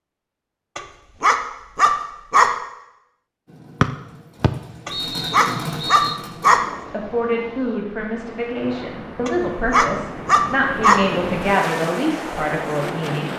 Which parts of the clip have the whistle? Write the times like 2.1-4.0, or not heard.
3.8-6.2.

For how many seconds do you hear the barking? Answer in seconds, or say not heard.
5 s.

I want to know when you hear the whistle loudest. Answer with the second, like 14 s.
4 s.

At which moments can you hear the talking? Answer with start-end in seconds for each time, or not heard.
6.8-13.3.